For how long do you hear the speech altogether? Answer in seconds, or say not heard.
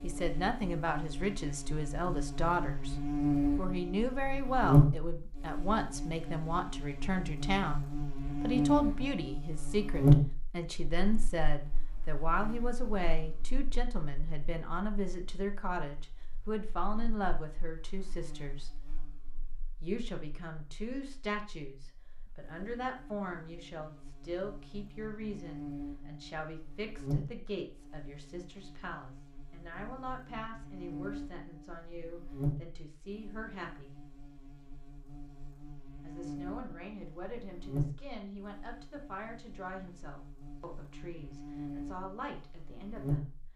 40 s.